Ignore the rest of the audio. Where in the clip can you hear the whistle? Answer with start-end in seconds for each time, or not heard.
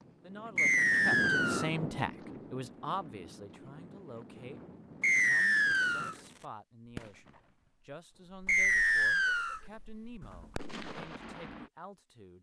0.6-1.7, 5.0-6.2, 8.4-9.6.